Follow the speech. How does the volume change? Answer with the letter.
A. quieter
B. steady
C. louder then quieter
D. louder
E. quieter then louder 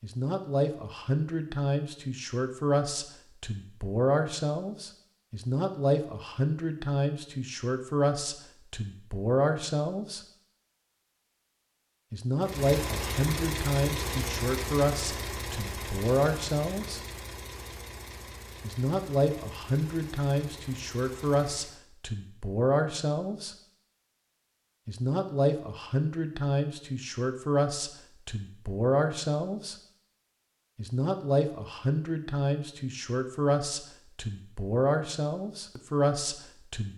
B.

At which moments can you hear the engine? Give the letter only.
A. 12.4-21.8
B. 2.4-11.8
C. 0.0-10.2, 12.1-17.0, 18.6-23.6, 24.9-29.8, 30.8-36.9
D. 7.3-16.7
A.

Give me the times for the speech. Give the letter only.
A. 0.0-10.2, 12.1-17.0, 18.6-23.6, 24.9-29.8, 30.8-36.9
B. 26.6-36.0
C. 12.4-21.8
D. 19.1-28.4
A.